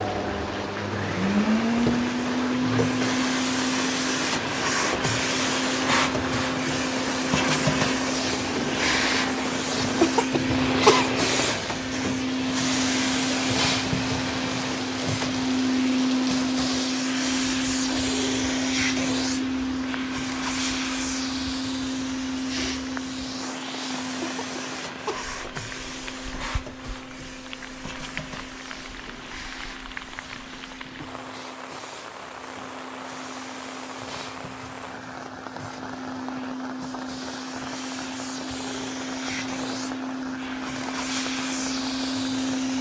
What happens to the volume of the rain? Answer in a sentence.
The loudness of the rain goes down.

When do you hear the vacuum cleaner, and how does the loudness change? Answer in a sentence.
You can hear the vacuum cleaner from 0.0 to 42.7 s, getting quieter then louder.